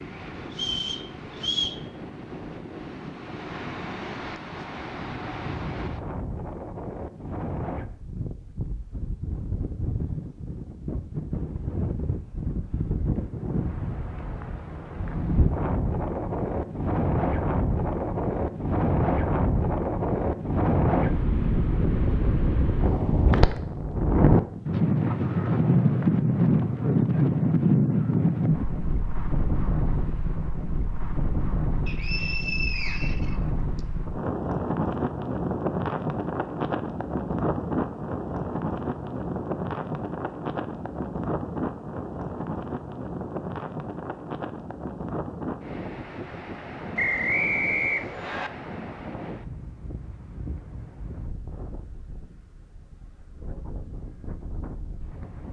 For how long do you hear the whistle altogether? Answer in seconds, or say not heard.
5 s.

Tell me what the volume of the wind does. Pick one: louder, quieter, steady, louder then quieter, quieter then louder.
louder then quieter.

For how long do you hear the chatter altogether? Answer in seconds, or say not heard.
not heard.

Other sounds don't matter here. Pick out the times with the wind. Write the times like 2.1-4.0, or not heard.
0.0-55.4.